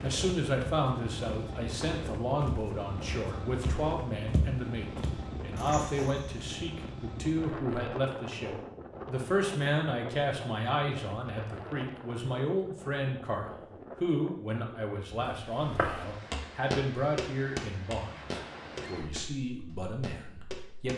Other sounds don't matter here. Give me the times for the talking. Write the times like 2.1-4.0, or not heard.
0.0-20.9.